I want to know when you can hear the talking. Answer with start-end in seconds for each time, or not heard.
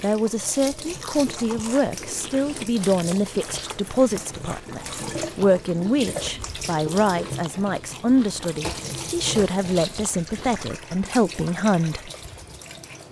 0.0-12.1.